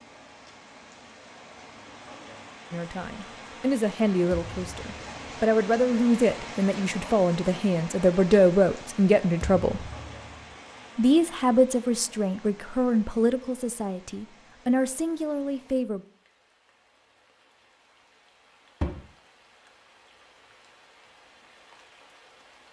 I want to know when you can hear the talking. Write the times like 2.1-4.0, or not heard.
2.7-9.8, 10.9-16.1.